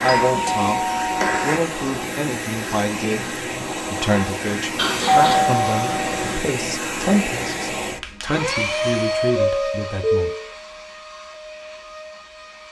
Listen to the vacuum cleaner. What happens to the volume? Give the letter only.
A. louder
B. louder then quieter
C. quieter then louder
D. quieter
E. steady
D.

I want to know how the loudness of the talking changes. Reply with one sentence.
The volume of the talking stays about the same.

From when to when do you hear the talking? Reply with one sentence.
You can hear the talking from 0.0 to 10.3 s.